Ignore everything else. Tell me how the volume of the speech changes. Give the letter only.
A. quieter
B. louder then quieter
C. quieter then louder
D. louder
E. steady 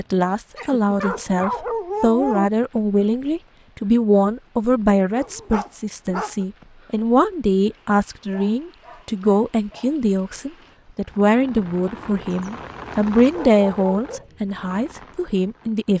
E.